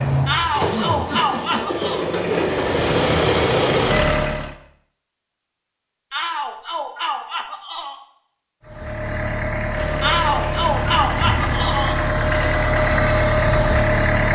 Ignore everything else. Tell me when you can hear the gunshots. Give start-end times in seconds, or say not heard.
not heard.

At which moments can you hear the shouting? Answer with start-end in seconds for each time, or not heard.
0.2-2.0, 6.1-8.0, 10.0-12.0.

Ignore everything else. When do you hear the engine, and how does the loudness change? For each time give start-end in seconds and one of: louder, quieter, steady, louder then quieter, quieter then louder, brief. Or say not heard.
0.0-4.5 louder
8.6-14.3 louder.